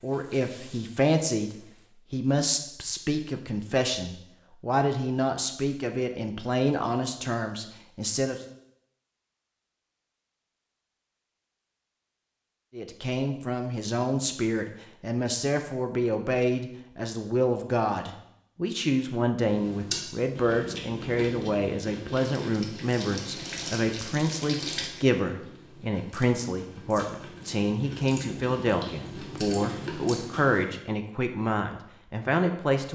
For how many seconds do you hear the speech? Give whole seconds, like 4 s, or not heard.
28 s.